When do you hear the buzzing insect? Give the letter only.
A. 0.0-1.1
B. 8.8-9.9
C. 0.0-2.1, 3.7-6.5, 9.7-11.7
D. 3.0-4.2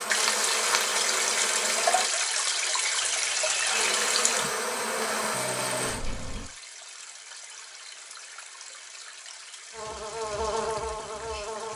C.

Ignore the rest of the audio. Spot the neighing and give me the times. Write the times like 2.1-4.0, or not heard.
3.0-4.2.